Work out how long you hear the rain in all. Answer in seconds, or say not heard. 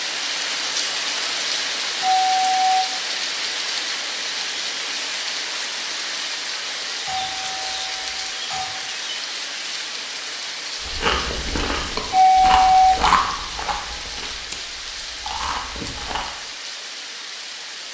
18 s.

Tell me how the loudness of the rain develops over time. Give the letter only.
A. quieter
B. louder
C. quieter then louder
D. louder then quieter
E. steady
A.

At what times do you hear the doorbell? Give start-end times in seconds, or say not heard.
1.9-2.9, 7.0-8.7, 12.1-12.9.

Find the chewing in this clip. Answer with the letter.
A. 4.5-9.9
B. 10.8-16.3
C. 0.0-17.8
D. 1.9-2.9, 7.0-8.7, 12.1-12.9
B.